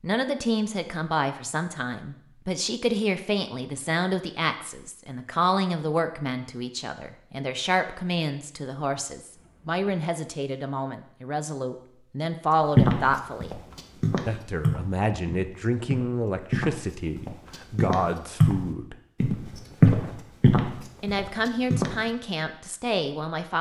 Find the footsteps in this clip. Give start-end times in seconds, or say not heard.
12.8-21.9.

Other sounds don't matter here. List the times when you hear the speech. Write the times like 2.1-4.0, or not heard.
0.0-13.6, 14.2-18.9, 21.0-23.5.